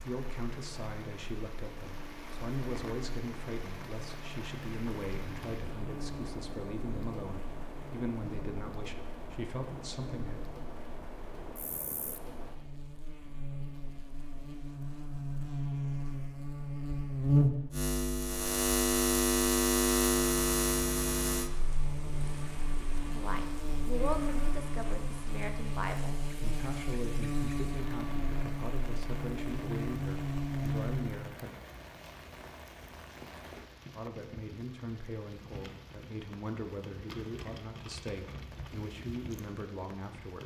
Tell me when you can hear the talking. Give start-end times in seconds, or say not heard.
0.0-10.4, 23.1-31.6, 34.0-40.4.